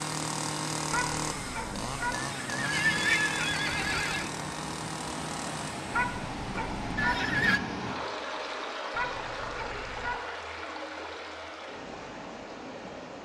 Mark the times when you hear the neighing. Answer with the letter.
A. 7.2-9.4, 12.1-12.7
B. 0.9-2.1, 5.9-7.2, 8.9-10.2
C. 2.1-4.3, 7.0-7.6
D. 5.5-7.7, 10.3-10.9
C.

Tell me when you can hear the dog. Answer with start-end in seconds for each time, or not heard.
0.9-2.1, 5.9-7.2, 8.9-10.2.